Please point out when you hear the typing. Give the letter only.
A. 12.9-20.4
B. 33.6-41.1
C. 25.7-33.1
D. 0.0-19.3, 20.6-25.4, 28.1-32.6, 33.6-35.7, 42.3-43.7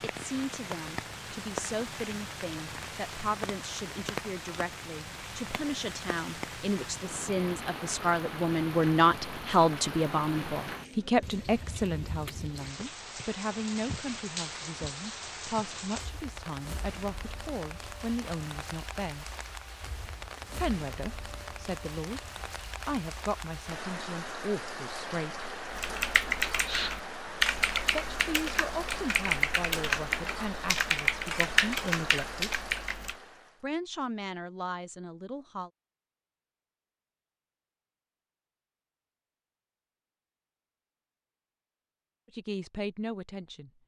C.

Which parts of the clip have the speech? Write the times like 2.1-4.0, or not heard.
0.0-19.3, 20.6-25.4, 28.1-32.6, 33.6-35.7, 42.3-43.7.